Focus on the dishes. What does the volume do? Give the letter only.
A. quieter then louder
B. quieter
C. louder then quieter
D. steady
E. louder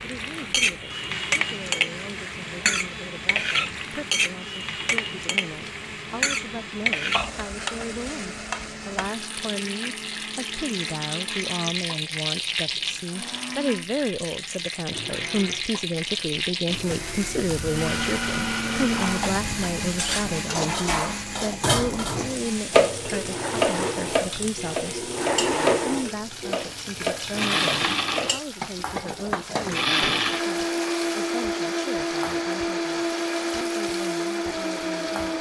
C.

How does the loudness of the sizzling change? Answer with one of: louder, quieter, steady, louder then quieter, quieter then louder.
quieter.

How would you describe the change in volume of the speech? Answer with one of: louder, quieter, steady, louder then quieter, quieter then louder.
louder then quieter.